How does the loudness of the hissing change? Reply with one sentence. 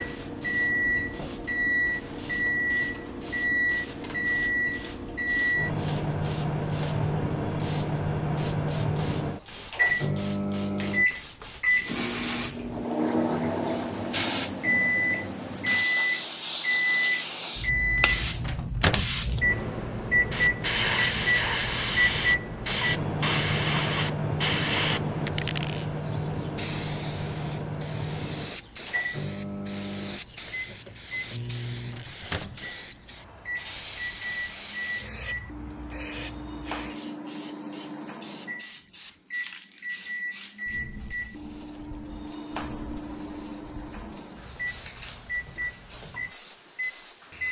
The loudness of the hissing goes up, then down.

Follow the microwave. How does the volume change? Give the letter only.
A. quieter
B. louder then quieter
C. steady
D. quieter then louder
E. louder
A.